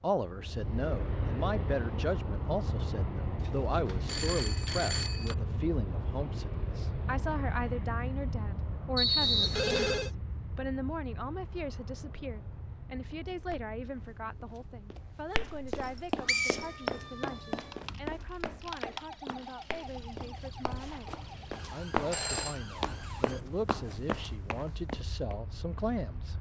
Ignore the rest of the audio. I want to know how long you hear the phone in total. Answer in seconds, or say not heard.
3 s.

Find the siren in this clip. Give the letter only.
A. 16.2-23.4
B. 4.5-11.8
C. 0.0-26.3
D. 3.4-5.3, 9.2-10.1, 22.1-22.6
A.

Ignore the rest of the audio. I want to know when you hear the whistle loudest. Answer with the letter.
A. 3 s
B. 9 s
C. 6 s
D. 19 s
B.